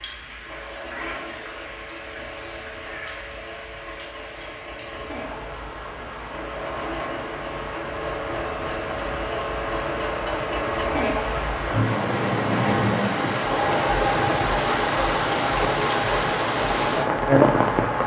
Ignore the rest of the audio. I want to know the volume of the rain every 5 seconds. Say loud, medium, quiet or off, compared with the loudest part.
quiet, quiet, medium, loud.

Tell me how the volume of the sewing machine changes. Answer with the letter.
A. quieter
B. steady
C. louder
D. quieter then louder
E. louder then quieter
C.